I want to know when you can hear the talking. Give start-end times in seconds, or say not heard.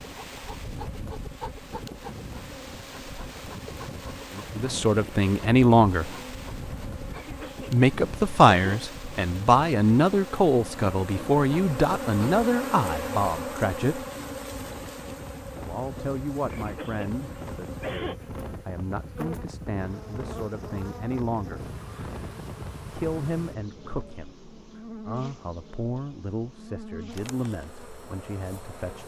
4.3-6.1, 7.7-14.1, 15.6-21.6, 22.9-29.0.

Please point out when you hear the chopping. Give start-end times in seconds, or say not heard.
not heard.